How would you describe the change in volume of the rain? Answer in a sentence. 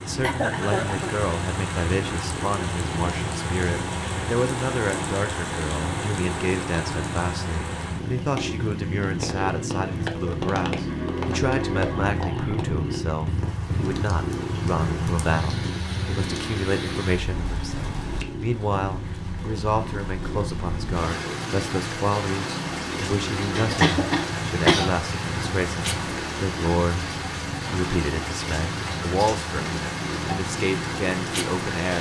The volume of the rain goes down, then up.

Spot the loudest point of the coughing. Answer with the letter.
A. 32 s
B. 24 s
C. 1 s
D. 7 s
B.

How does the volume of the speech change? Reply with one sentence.
The loudness of the speech stays about the same.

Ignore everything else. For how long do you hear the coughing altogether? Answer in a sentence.
You can hear the coughing for 2 seconds altogether.